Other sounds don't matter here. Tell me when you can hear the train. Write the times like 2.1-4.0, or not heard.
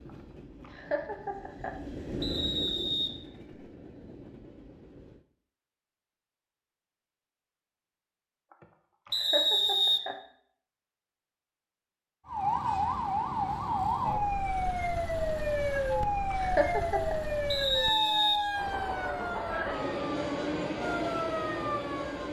0.0-5.2, 18.5-22.2.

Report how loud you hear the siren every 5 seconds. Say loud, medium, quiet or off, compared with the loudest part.
off, off, loud, loud, medium.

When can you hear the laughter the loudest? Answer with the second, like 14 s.
17 s.